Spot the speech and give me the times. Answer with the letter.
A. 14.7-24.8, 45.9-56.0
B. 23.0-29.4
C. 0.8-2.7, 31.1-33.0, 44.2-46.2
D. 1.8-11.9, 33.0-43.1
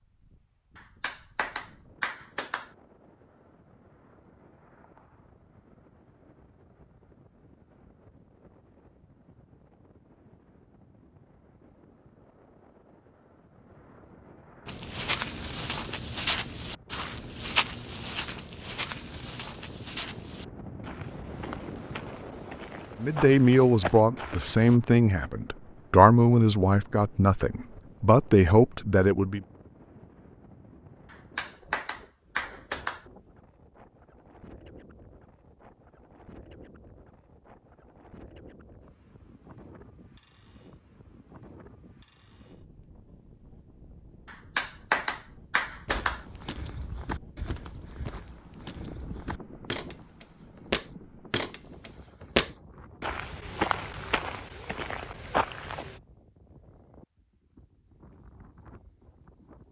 B.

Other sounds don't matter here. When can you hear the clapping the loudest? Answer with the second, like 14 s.
45 s.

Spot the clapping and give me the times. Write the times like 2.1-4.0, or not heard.
0.8-2.7, 31.1-33.0, 44.2-46.2.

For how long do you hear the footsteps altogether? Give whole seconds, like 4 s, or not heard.
20 s.